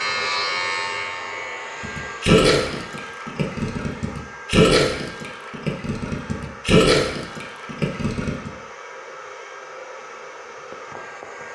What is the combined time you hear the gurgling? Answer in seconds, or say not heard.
7 s.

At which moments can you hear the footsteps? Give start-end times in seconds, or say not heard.
not heard.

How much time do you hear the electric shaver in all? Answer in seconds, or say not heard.
2 s.